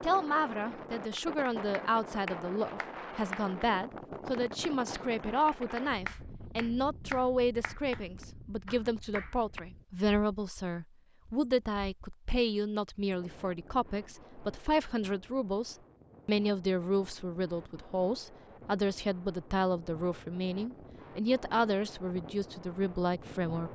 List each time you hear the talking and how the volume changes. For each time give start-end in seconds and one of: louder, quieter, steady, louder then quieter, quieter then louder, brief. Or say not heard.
0.0-23.7 steady.